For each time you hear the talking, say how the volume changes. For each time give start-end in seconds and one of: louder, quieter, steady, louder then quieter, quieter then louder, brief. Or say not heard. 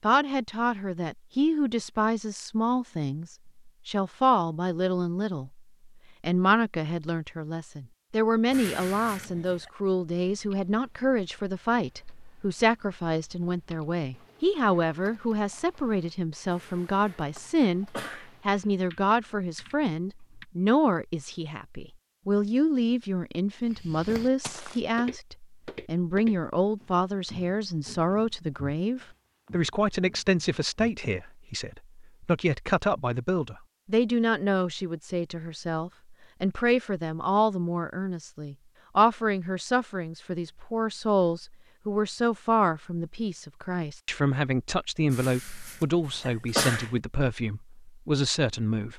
0.0-48.9 steady.